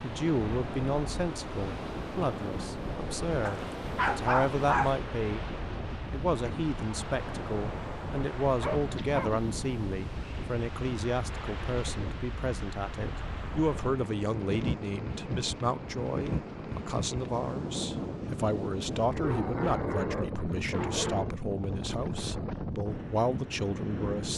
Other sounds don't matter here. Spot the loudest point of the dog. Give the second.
4 s.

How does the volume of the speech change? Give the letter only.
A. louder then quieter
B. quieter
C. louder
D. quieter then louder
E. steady
E.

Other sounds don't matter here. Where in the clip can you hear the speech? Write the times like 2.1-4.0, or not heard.
0.0-5.5, 6.1-24.3.